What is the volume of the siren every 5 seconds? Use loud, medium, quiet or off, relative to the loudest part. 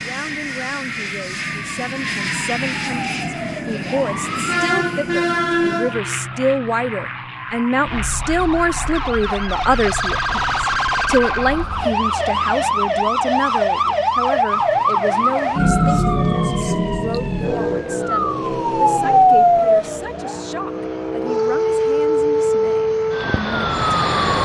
medium, medium, loud, loud, loud.